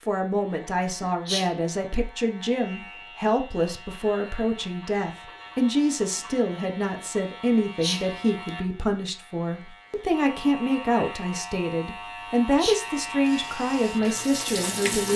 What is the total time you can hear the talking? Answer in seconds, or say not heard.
15 s.